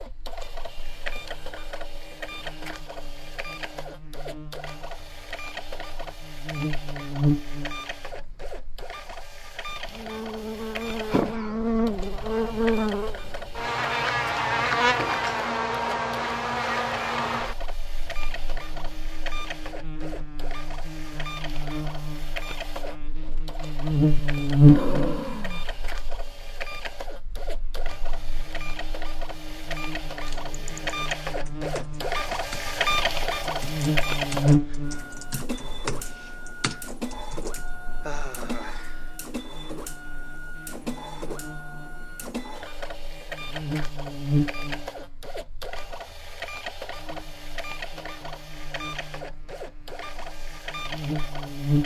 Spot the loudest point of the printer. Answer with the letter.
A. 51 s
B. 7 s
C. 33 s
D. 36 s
C.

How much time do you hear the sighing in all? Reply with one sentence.
You can hear the sighing for 3 seconds altogether.